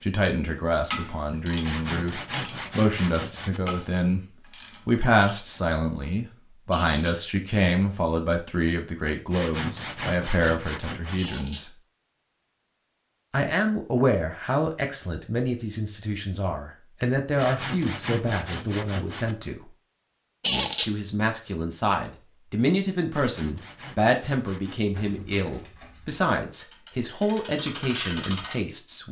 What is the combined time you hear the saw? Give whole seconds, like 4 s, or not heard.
8 s.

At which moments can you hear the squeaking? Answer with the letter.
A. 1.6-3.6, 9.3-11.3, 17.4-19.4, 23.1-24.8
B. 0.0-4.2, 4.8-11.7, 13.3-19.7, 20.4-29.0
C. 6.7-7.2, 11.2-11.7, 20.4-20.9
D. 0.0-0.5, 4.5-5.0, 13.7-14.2
C.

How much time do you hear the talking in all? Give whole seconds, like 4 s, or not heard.
26 s.